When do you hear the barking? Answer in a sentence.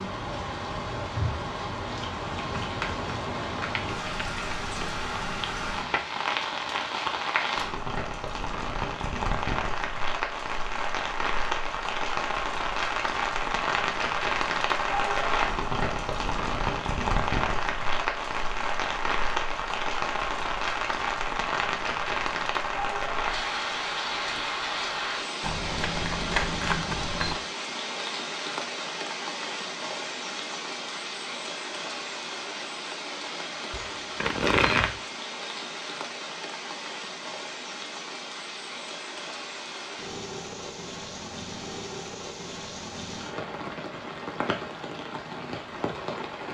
You can't hear the barking here.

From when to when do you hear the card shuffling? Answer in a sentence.
The card shuffling can be heard from 3.5 to 6.0 s, from 25.4 to 27.4 s and from 33.7 to 35.0 s.